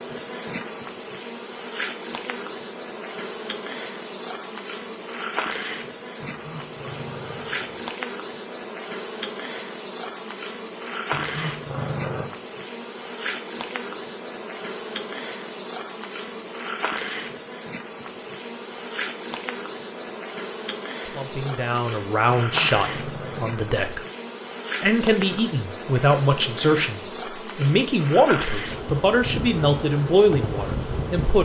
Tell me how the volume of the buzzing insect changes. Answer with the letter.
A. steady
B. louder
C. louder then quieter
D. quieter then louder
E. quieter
A.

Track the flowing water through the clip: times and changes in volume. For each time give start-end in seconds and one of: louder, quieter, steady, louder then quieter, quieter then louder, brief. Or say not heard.
not heard.